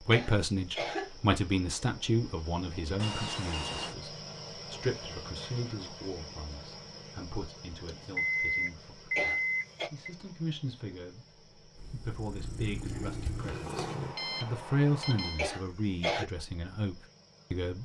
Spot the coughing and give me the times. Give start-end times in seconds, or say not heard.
0.1-1.1, 9.2-9.9, 15.3-16.3.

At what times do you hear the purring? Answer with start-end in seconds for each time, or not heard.
11.8-14.2.